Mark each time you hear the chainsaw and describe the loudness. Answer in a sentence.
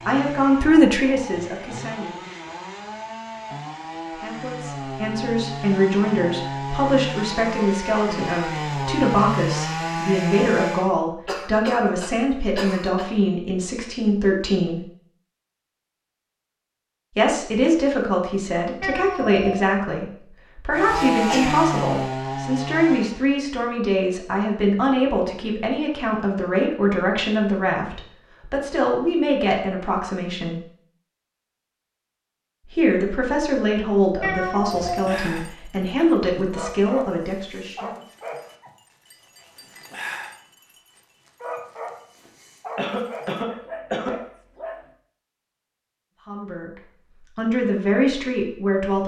The chainsaw can be heard from 0.0 to 10.9 s, getting louder; and briefly from 20.7 to 23.2 s.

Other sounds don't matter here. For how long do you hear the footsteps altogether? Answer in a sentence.
You can't hear the footsteps here.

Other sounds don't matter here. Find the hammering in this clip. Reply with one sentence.
The hammering can't be heard in this clip.